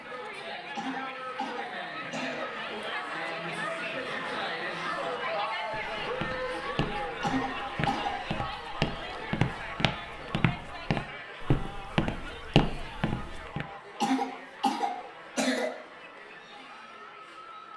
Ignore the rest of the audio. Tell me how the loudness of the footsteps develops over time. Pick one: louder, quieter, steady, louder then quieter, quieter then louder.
louder.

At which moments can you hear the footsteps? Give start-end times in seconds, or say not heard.
5.7-13.7.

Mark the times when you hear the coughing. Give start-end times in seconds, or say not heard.
0.8-2.5, 7.2-8.2, 14.0-15.8.